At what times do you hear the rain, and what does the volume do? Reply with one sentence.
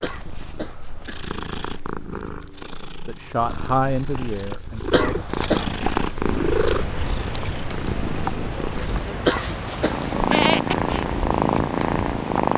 The rain can be heard from 6.0 to 12.5 s, at a steady volume.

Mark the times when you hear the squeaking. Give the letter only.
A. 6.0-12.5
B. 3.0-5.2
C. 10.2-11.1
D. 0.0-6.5
C.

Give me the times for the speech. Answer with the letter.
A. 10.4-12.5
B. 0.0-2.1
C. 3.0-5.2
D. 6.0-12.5
C.